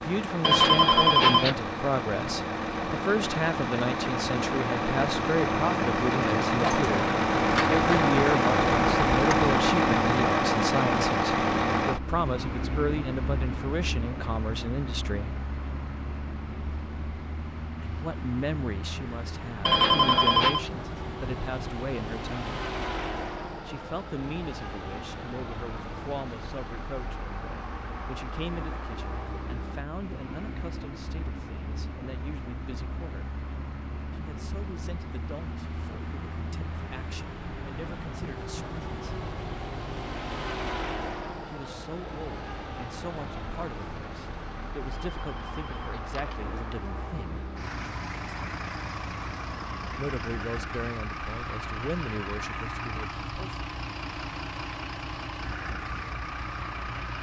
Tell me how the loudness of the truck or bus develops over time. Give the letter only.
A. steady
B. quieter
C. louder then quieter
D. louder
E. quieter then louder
B.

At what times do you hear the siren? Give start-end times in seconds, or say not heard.
not heard.